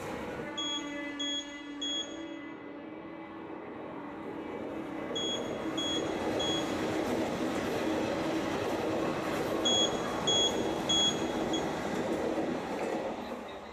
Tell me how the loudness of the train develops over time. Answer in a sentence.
The loudness of the train goes up.